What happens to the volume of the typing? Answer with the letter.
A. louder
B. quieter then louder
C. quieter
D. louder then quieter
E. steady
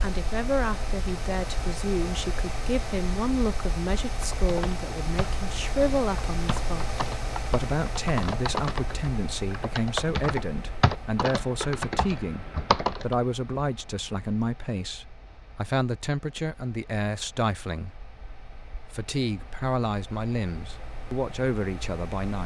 A.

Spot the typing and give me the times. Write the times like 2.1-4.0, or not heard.
4.1-13.2.